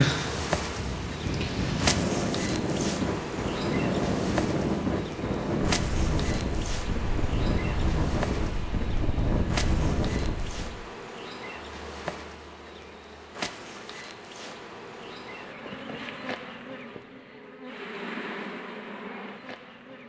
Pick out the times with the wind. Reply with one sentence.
You can hear the wind from 0.0 to 10.8 s.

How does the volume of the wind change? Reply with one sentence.
The loudness of the wind stays about the same.